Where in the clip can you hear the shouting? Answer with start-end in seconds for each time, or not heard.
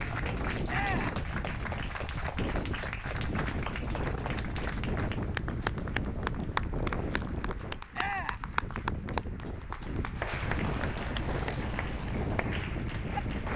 0.7-1.1, 7.9-8.4.